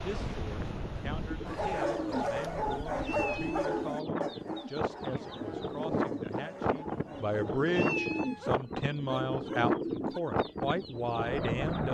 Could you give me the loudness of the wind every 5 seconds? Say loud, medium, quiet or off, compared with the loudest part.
medium, loud, loud.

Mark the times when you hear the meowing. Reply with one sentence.
You can hear the meowing from 3.0 to 3.8 s and from 7.7 to 8.6 s.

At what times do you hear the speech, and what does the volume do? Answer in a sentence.
The speech can be heard from 0.0 to 11.8 s, getting louder.